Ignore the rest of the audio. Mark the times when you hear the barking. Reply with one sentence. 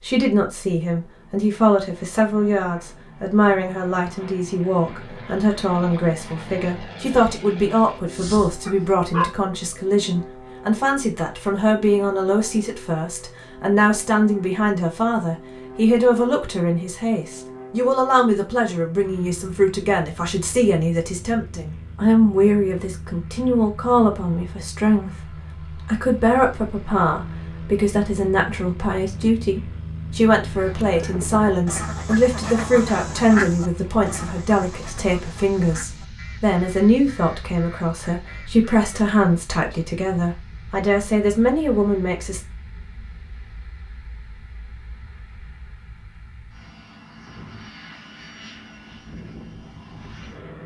The barking can be heard from 8.1 to 9.2 s.